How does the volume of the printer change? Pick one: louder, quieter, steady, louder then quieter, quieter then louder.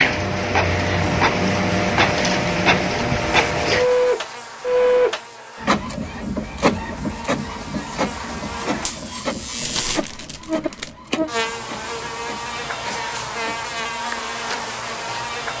quieter.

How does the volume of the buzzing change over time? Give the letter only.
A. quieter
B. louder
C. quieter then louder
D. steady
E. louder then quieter
C.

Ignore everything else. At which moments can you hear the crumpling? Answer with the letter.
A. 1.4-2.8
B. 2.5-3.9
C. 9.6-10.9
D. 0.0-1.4
C.